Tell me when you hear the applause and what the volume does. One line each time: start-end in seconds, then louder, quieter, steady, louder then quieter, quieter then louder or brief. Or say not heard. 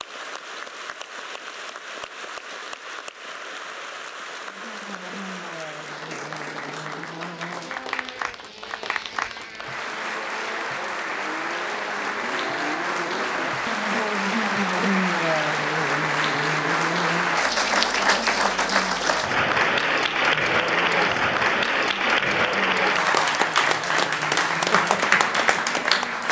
0.0-26.2 louder.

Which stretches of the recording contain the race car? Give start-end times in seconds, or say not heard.
4.4-26.2.